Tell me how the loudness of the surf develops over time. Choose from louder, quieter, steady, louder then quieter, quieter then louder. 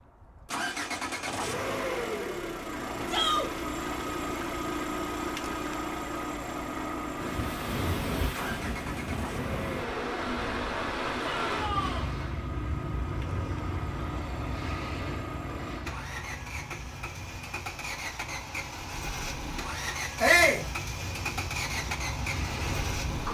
quieter then louder.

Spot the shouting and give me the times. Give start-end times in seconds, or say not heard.
3.0-3.5, 11.2-12.1, 20.2-20.6.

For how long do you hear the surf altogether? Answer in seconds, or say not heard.
16 s.